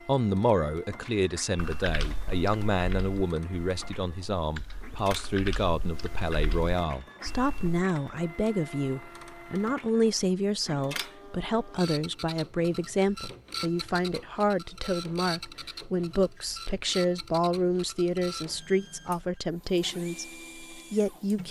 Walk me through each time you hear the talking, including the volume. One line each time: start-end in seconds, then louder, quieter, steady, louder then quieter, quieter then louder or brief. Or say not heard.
0.1-21.4 steady.